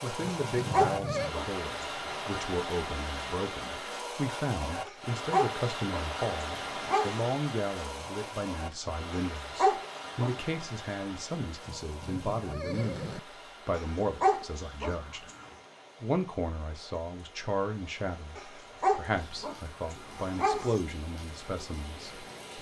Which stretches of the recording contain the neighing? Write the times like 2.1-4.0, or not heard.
0.2-1.4, 11.7-13.2.